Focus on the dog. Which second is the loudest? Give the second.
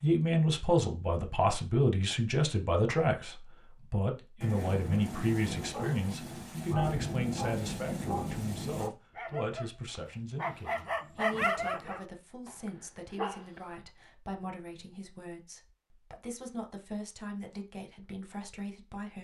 11 s.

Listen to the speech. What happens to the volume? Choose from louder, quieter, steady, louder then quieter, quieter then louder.
quieter.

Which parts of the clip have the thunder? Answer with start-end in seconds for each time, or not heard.
4.4-8.9.